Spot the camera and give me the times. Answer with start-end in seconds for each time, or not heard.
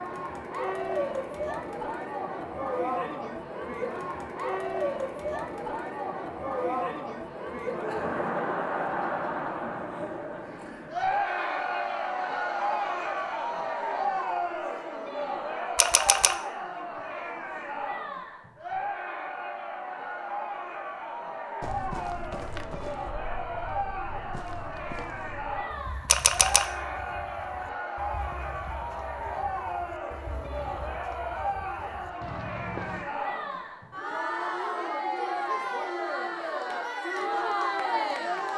15.8-16.4, 26.1-26.6.